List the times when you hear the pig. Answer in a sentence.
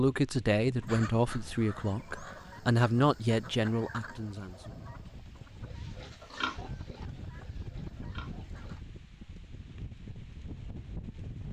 The pig can be heard from 5.6 to 8.8 s.